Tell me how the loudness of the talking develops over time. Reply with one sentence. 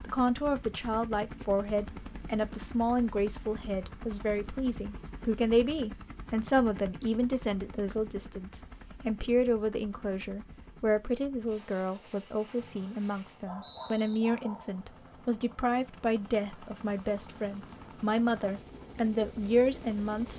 The loudness of the talking stays about the same.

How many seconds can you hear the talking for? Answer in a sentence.
The talking can be heard for 20 seconds in total.